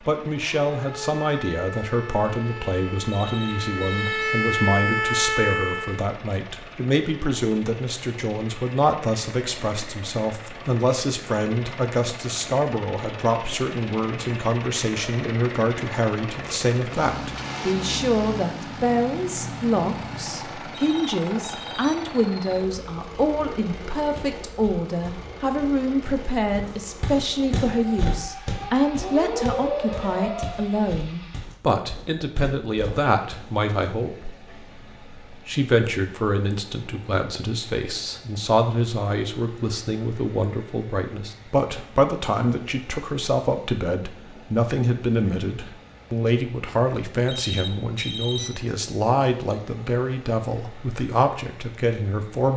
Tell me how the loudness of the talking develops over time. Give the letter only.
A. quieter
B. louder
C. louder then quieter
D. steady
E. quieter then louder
D.